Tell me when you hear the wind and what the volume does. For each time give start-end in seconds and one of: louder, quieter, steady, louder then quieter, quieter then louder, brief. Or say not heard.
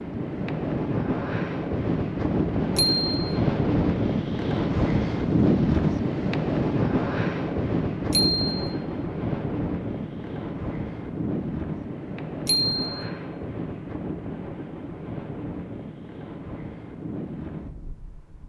0.0-18.4 quieter.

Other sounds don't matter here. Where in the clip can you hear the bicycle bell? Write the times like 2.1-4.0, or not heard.
2.8-3.4, 8.1-8.8, 12.4-13.1.